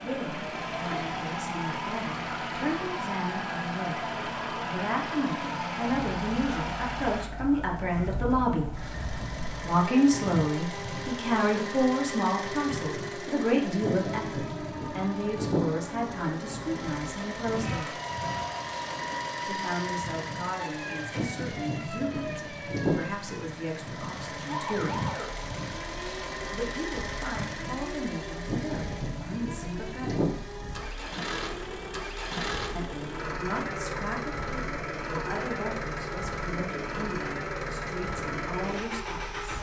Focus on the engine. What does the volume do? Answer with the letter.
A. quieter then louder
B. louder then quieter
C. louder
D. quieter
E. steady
E.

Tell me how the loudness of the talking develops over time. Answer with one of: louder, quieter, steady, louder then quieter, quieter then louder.
louder then quieter.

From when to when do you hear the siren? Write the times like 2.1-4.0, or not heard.
0.0-39.5.